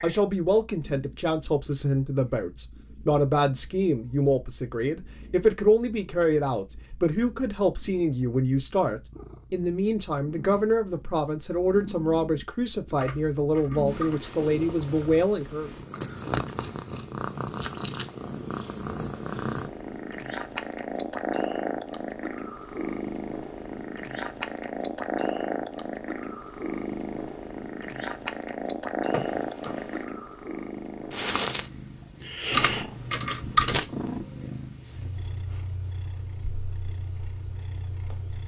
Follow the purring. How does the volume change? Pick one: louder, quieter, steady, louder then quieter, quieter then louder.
louder.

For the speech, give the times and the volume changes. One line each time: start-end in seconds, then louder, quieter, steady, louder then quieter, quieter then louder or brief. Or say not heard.
0.0-15.7 steady.